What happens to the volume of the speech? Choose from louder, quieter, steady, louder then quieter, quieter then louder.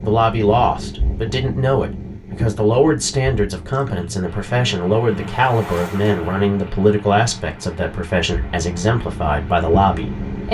steady.